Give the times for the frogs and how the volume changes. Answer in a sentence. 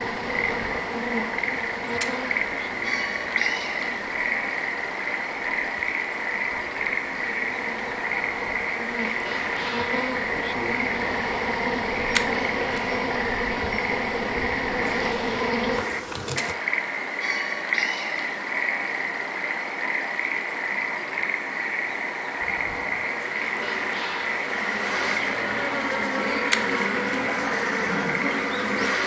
The frogs can be heard from 0.0 to 29.0 s, at a steady volume.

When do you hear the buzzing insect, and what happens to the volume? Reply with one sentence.
You can hear the buzzing insect from 0.0 to 16.6 s, getting quieter then louder; and from 22.4 to 29.0 s, getting louder.